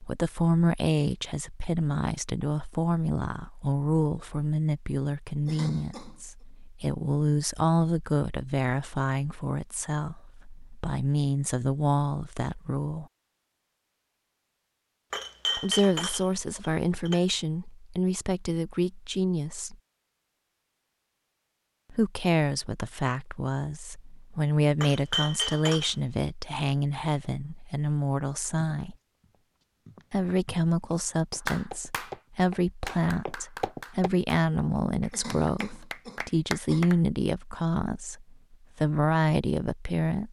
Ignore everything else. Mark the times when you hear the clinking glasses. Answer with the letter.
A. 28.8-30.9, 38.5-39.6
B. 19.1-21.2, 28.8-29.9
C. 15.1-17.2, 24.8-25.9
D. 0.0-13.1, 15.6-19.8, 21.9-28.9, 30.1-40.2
C.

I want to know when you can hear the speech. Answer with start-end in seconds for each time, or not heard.
0.0-13.1, 15.6-19.8, 21.9-28.9, 30.1-40.2.